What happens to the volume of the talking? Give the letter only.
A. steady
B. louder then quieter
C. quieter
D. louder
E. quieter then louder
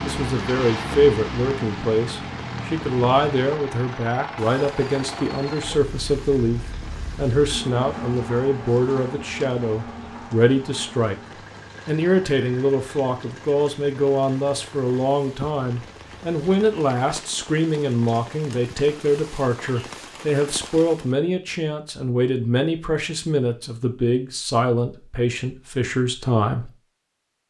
A.